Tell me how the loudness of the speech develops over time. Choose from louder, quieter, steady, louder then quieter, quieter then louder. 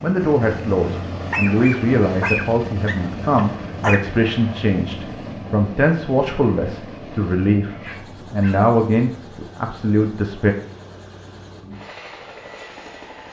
steady.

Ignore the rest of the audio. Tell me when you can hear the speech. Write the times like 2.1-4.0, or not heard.
0.0-10.6.